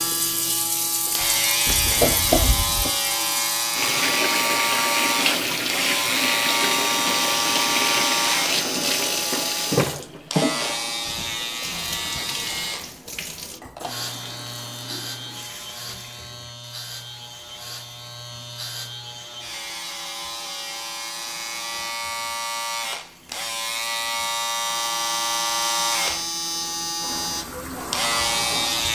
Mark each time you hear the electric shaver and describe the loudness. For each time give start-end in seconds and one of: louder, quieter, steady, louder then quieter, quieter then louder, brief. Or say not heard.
0.0-28.9 quieter then louder.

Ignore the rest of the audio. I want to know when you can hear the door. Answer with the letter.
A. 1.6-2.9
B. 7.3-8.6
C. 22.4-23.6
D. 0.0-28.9
A.